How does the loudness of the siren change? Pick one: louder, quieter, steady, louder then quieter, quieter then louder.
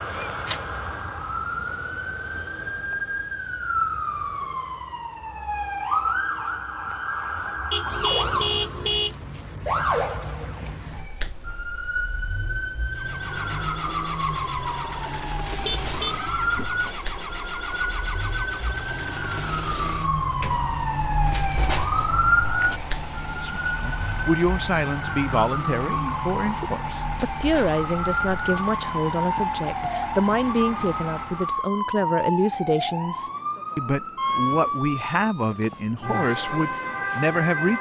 steady.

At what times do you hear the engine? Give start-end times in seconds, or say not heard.
12.9-31.7.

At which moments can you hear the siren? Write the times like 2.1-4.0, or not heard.
0.0-37.7.